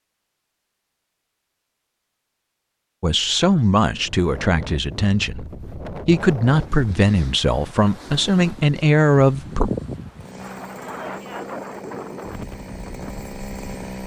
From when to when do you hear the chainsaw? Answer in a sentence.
You can hear the chainsaw from 10.2 to 14.0 s.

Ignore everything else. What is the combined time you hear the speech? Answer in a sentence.
You can hear the speech for 7 seconds altogether.